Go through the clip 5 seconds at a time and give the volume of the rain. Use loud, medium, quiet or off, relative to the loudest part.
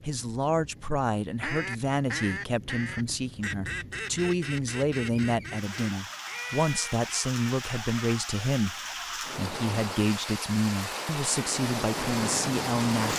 quiet, medium, loud.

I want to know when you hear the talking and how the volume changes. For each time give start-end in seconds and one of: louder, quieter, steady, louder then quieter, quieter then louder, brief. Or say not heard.
0.0-13.1 steady.